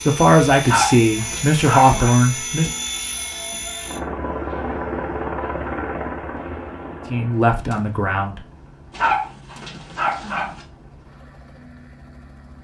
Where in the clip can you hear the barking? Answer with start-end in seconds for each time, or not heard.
0.6-2.1, 8.9-10.7.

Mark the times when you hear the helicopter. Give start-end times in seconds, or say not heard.
0.0-12.5.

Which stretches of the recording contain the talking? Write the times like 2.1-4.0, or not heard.
0.1-2.7, 7.1-8.4.